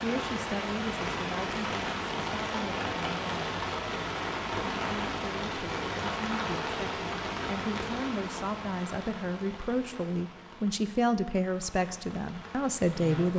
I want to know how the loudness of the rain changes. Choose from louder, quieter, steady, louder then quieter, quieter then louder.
quieter.